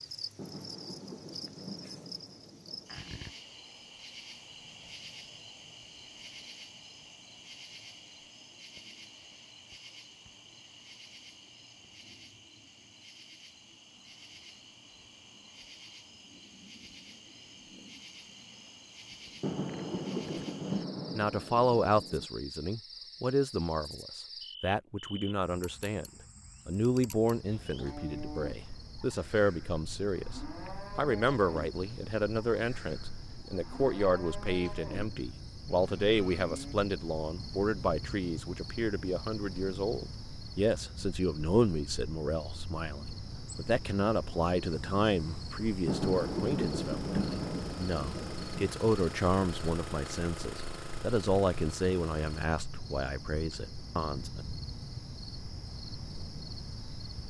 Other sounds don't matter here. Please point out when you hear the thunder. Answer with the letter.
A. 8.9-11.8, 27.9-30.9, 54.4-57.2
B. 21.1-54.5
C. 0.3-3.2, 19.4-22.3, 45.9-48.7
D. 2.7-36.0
C.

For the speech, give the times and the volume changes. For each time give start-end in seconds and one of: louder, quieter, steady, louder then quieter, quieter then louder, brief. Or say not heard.
21.1-54.5 steady.